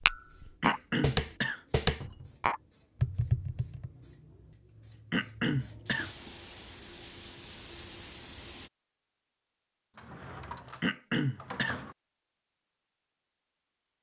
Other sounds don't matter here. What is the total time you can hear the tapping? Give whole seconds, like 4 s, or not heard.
4 s.